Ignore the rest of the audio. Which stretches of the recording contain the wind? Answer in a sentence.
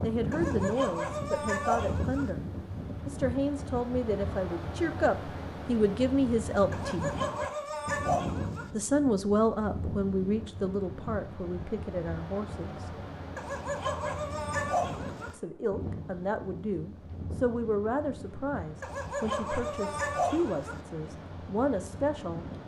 The wind can be heard from 0.0 to 22.6 s.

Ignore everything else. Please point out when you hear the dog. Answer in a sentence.
The dog can be heard from 0.3 to 2.3 s, from 6.7 to 8.7 s, from 13.3 to 15.3 s and from 18.8 to 20.8 s.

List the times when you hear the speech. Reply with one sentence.
You can hear the speech from 0.0 to 7.1 s, from 8.7 to 12.9 s and from 15.3 to 22.4 s.